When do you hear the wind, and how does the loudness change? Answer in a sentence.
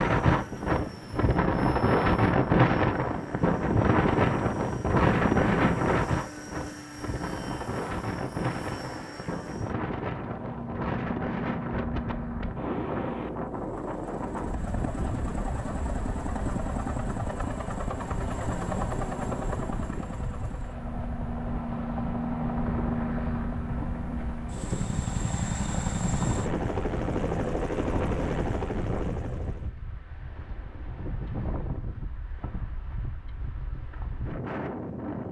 You can hear the wind from 0.0 to 35.2 s, getting quieter.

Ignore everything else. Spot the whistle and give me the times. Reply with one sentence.
You can't hear the whistle here.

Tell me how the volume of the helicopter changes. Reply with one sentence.
The loudness of the helicopter goes up.